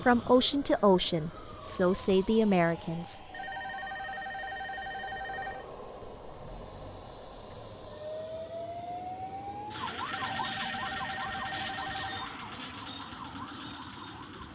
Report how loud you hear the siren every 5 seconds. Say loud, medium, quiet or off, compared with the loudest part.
medium, loud, loud.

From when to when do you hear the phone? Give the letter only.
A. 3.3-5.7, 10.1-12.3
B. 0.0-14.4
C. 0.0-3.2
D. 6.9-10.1
A.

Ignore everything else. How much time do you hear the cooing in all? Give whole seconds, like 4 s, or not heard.
not heard.